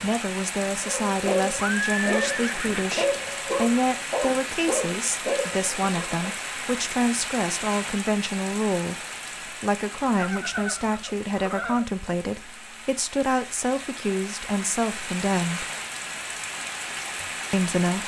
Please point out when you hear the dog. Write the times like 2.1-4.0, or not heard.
0.8-6.2.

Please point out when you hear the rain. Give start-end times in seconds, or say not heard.
0.0-18.0.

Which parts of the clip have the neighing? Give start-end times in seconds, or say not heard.
1.6-3.3, 10.2-11.8.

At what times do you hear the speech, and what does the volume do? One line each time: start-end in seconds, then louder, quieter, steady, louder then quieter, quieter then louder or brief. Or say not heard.
0.0-15.7 steady
17.5-18.0 brief.